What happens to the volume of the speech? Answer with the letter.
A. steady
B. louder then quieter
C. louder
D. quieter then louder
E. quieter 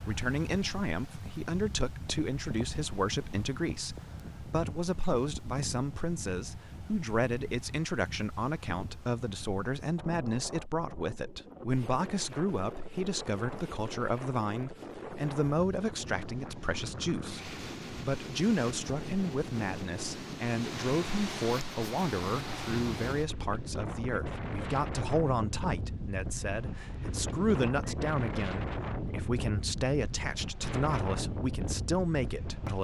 A.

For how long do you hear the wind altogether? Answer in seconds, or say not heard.
33 s.